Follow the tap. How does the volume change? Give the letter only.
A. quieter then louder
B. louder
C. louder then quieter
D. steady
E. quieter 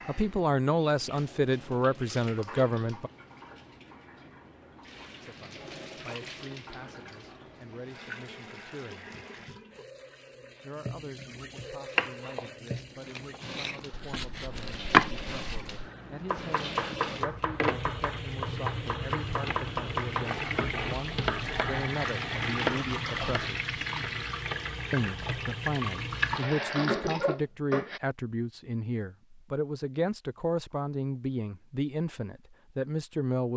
B.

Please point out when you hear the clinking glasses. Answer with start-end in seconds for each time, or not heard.
not heard.